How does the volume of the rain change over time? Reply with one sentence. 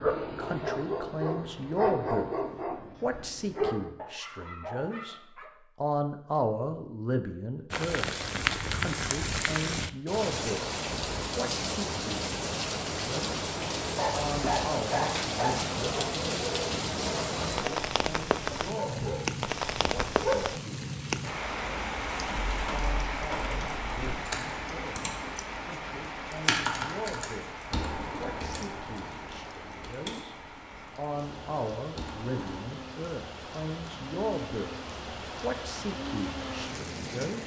The volume of the rain goes down.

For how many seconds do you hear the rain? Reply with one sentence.
The rain can be heard for 30 seconds in total.